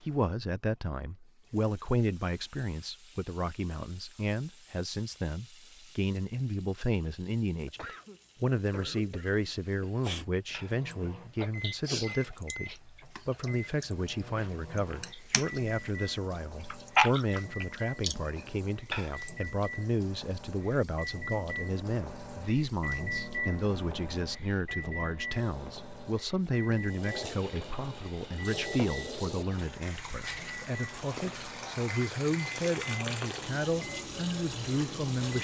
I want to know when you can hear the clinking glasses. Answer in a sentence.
You can't hear the clinking glasses here.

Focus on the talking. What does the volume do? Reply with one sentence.
The volume of the talking stays about the same.